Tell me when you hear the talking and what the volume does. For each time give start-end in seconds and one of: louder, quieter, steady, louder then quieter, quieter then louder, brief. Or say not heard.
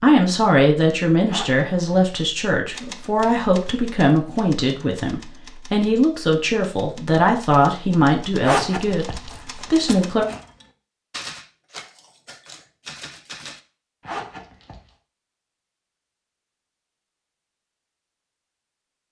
0.0-10.2 steady.